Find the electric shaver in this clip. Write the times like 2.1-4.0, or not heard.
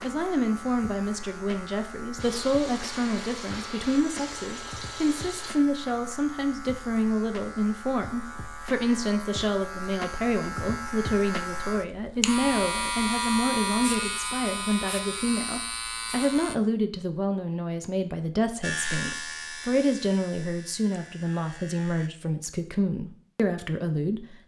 0.0-16.6, 18.6-22.1.